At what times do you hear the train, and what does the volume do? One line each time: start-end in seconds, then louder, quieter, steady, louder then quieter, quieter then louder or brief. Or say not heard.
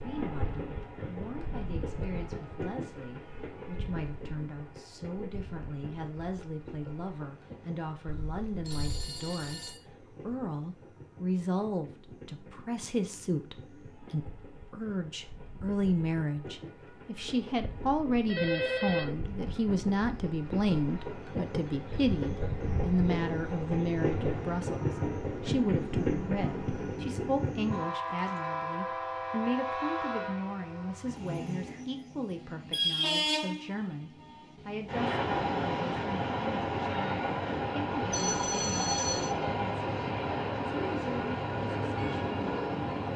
0.0-43.1 quieter then louder.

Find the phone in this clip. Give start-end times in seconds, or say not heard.
8.1-9.8, 18.1-19.1, 38.1-39.4.